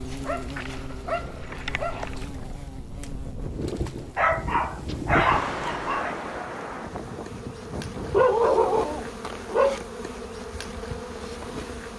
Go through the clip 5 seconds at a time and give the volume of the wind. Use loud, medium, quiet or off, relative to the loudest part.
medium, loud, off.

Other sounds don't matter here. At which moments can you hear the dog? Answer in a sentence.
You can hear the dog from 0.2 to 2.1 s, from 4.2 to 6.2 s and from 8.1 to 9.8 s.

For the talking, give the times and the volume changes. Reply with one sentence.
The talking can't be heard in this clip.